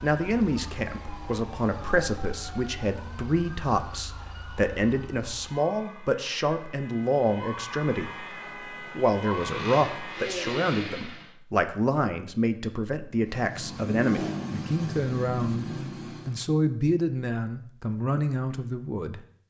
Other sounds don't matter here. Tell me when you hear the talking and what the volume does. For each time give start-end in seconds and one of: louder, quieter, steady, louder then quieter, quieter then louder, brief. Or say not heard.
0.0-19.4 steady.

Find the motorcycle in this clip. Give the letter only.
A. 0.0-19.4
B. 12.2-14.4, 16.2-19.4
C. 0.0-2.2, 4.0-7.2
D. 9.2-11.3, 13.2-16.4
D.